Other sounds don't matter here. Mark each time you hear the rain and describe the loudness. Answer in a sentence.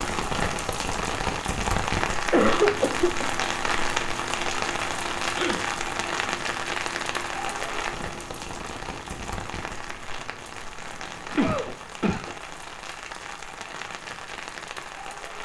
You can hear the rain from 0.0 to 15.4 s, getting quieter.